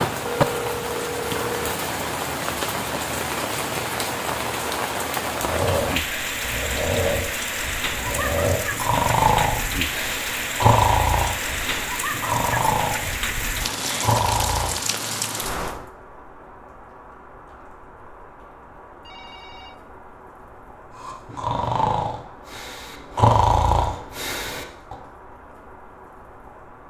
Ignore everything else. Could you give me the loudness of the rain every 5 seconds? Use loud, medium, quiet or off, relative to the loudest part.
loud, loud, loud, medium, quiet, quiet.